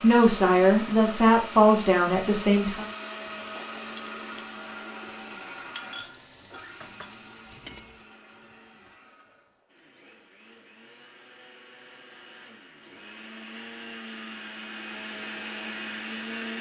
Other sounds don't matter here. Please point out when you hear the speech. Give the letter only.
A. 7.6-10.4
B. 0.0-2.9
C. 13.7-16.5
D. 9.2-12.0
B.